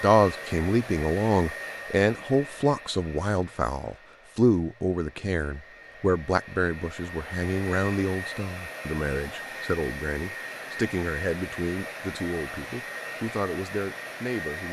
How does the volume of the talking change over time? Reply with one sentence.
The volume of the talking goes down.